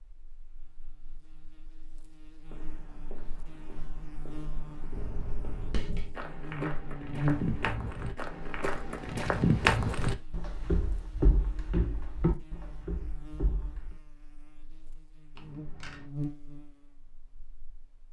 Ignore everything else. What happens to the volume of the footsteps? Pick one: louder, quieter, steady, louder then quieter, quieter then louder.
louder then quieter.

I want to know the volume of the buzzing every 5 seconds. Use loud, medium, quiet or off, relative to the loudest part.
quiet, loud, quiet, medium.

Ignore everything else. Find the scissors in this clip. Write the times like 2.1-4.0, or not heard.
4.9-6.2, 15.3-16.1.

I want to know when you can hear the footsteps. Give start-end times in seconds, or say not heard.
2.5-13.9.